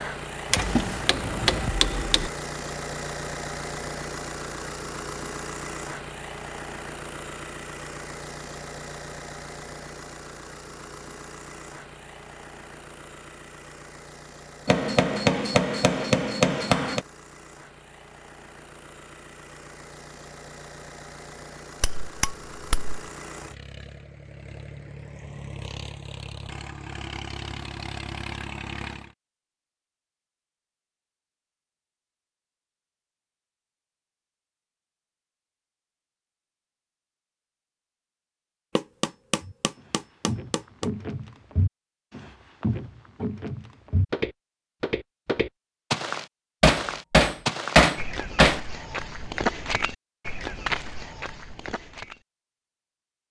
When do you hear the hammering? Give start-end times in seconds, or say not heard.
0.5-2.3, 14.7-17.1, 21.8-22.9, 38.8-40.9, 46.6-48.6.